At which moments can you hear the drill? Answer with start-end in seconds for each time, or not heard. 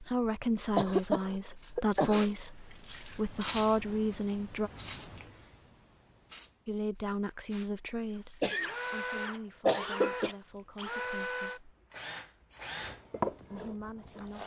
8.6-14.4.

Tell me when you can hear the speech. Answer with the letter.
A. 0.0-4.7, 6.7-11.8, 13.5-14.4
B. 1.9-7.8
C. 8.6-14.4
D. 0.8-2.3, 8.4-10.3
A.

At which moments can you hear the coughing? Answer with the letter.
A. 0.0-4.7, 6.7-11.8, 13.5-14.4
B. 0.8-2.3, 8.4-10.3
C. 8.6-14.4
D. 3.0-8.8
B.